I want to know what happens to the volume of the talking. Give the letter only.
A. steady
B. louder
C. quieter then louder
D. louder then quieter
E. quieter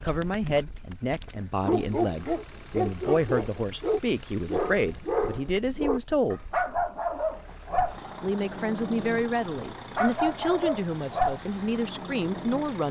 A.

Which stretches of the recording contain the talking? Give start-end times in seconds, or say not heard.
0.0-6.4, 8.2-12.8.